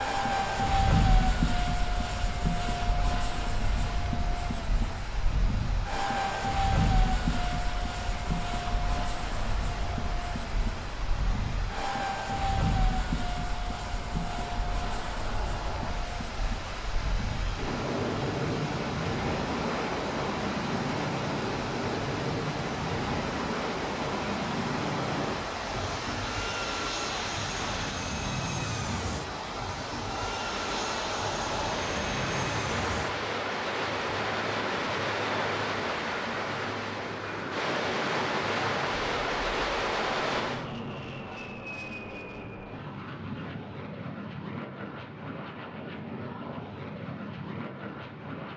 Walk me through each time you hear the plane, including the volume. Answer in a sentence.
The plane can be heard from 0.0 to 48.5 s, getting quieter.